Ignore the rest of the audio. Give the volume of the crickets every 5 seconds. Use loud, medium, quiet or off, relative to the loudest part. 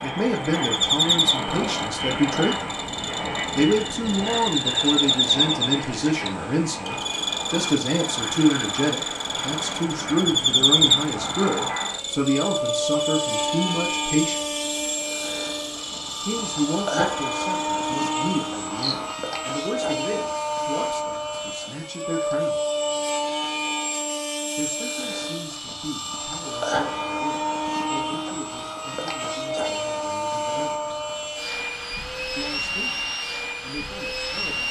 loud, loud, loud, medium, off, off, off.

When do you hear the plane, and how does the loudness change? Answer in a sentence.
You can hear the plane from 0.0 to 34.6 s, at a steady volume.